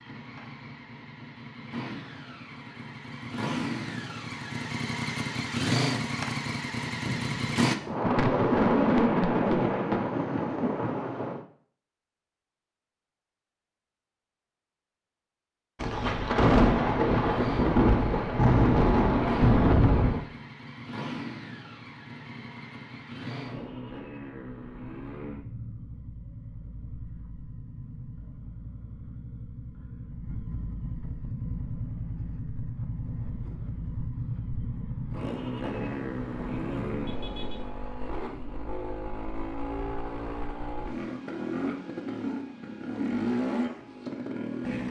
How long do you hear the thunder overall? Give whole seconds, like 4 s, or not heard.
11 s.